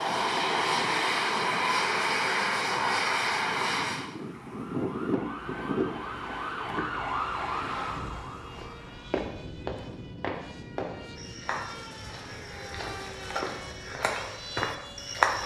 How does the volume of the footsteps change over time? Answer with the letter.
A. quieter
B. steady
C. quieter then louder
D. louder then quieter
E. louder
C.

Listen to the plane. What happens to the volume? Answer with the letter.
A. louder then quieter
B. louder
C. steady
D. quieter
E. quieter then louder
D.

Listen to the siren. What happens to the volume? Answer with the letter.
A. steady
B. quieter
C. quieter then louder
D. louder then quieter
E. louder
D.